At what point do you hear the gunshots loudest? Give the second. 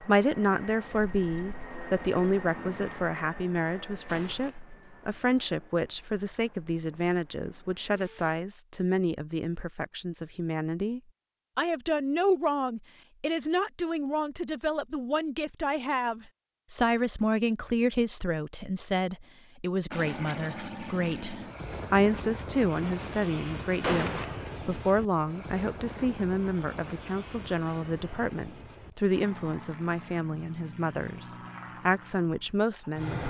24 s.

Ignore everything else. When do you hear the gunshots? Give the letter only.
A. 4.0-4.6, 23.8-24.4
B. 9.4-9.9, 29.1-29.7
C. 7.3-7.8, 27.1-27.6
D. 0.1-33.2
A.